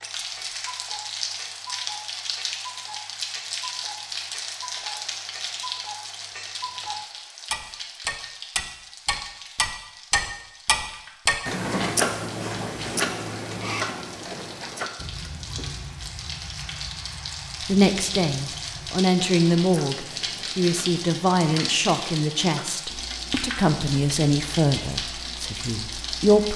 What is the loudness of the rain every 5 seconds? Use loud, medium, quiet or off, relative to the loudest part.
loud, medium, quiet, loud, loud, loud.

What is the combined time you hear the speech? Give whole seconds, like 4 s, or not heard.
9 s.